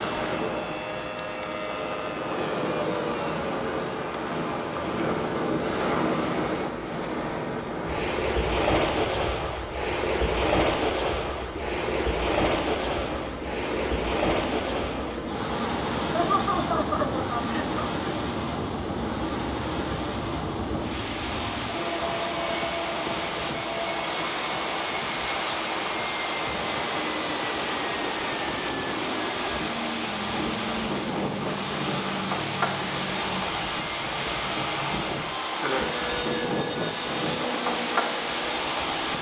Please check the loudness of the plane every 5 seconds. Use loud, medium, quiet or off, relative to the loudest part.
loud, medium, loud, loud, loud, loud, loud, loud.